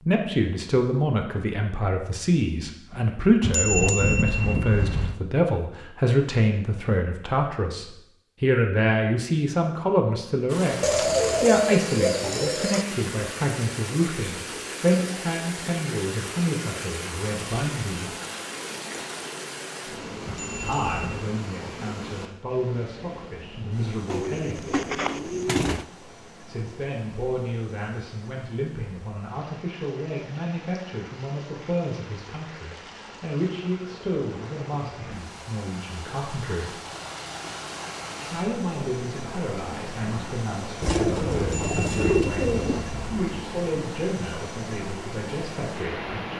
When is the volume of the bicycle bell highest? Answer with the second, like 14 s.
4 s.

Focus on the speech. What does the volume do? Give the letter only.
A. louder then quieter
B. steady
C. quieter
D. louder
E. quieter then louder
C.